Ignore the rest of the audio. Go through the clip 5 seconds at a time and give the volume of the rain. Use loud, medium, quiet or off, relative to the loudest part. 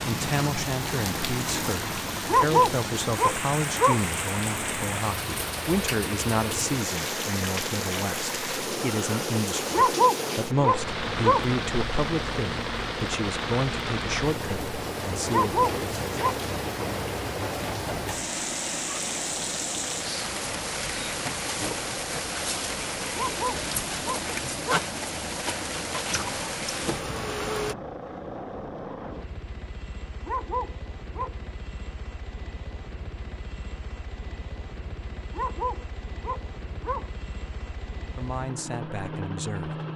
loud, loud, loud, loud, loud, loud, off, off.